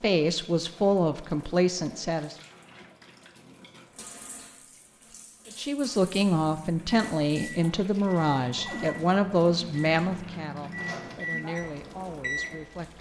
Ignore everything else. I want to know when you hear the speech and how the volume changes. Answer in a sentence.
You can hear the speech briefly from 0.0 to 2.4 s; and from 5.5 to 12.9 s, getting quieter.